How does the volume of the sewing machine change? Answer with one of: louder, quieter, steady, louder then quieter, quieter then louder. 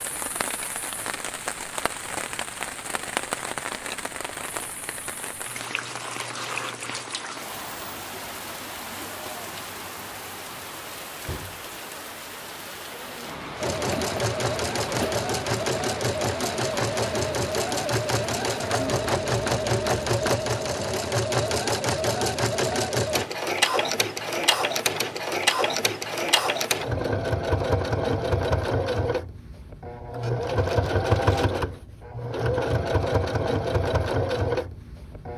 steady.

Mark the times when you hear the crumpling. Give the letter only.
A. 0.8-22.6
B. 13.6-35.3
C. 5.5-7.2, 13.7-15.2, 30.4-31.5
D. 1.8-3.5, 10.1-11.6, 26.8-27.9
C.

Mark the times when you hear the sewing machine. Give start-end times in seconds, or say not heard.
13.6-35.3.